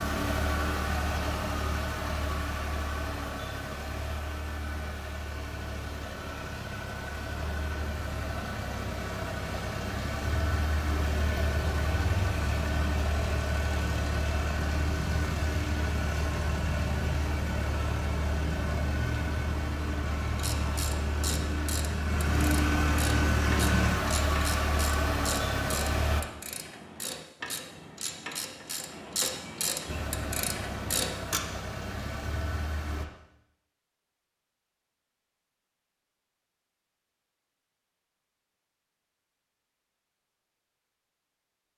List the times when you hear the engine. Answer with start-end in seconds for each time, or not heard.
0.0-26.2, 29.9-33.0.